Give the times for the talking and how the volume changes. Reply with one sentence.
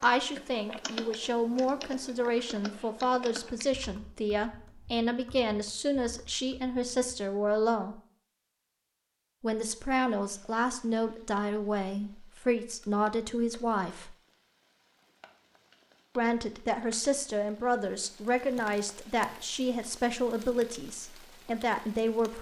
You can hear the talking from 0.0 to 8.0 s, at a steady volume; from 9.4 to 14.2 s, at a steady volume; and from 16.1 to 22.3 s, at a steady volume.